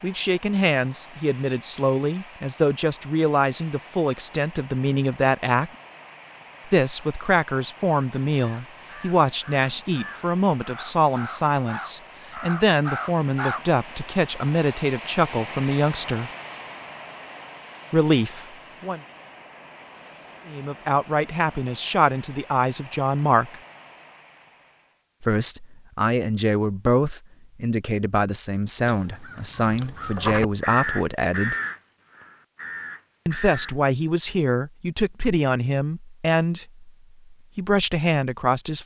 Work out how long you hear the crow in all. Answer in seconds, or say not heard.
10 s.